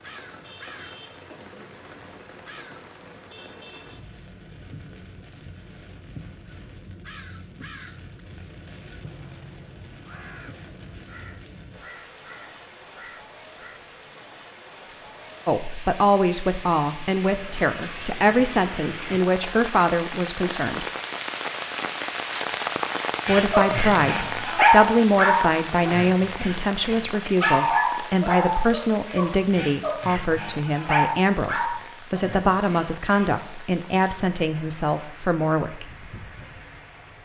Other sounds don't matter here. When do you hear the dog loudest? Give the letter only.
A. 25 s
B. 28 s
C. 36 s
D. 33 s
A.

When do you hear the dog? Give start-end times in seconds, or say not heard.
23.2-33.3.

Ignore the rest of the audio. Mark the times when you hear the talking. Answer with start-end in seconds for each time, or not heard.
15.4-20.9, 23.2-35.9.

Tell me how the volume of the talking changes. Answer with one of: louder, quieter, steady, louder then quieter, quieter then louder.
steady.